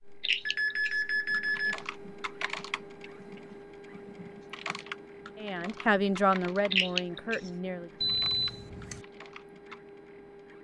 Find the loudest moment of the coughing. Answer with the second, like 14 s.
7 s.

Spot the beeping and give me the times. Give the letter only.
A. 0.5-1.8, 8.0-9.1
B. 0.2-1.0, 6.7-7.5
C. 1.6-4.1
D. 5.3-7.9
A.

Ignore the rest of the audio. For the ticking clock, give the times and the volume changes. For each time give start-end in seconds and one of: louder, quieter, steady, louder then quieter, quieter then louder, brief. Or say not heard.
not heard.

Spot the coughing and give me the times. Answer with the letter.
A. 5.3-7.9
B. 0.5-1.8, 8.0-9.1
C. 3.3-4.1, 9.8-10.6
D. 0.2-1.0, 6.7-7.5
D.